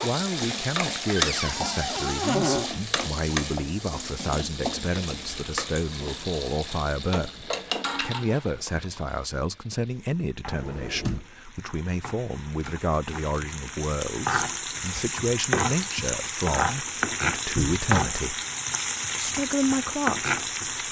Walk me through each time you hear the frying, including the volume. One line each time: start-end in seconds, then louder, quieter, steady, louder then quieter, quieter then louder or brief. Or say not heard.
0.0-20.8 quieter then louder.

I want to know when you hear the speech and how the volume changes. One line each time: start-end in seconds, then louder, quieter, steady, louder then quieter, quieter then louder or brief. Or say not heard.
0.0-18.4 steady
19.1-20.4 brief.